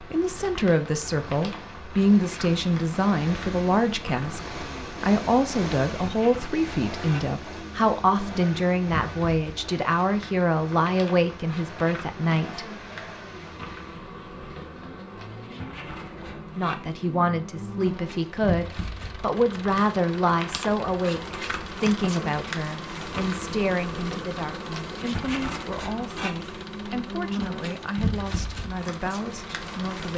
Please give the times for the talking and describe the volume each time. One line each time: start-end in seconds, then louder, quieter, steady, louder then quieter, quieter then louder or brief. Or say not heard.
0.0-12.7 steady
16.6-30.1 quieter.